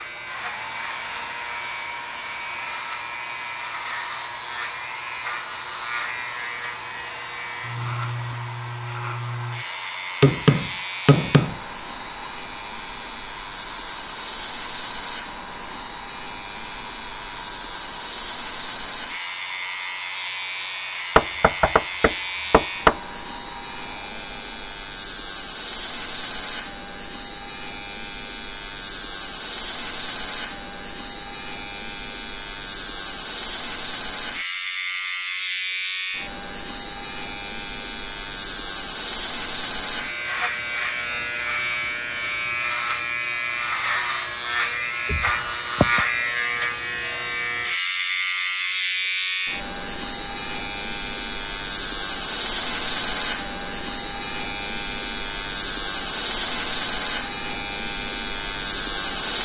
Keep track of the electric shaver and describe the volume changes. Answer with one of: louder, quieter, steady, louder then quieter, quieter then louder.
louder.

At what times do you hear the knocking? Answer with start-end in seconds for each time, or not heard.
10.2-11.6, 21.1-22.9, 45.0-46.0.